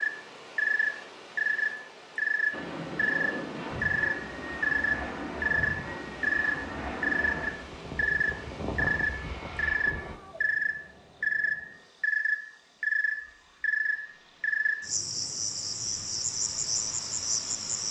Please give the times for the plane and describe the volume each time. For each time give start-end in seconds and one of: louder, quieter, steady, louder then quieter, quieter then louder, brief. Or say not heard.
2.5-10.2 steady.